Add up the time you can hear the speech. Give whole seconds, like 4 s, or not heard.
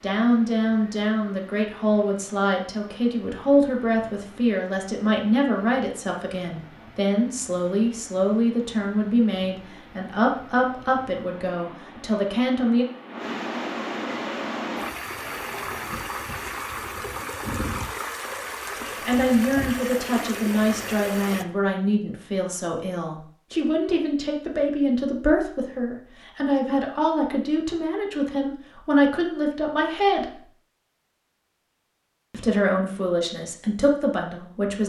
27 s.